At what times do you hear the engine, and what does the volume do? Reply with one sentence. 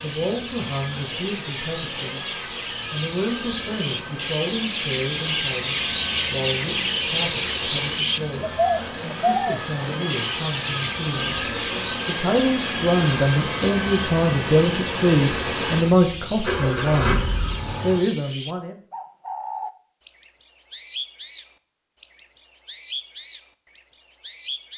You can hear the engine from 0.0 to 18.0 s, getting louder.